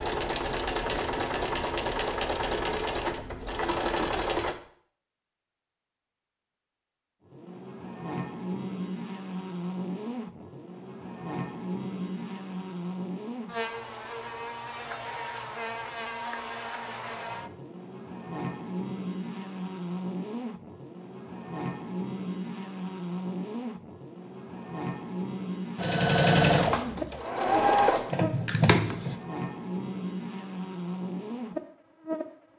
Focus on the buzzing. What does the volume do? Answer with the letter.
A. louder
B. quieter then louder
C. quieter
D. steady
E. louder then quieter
D.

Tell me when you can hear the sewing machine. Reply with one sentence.
You can hear the sewing machine from 0.0 to 4.5 s and from 25.8 to 29.1 s.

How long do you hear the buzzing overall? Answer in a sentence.
You can hear the buzzing for 25 seconds altogether.